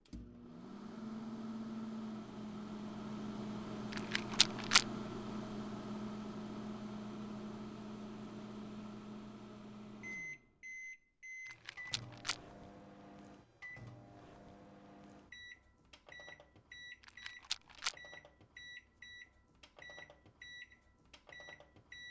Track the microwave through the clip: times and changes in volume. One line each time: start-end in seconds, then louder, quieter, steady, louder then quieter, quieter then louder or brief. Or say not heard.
0.0-22.0 quieter.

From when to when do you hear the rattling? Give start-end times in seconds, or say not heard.
3.9-4.8, 11.4-12.4, 17.0-17.9.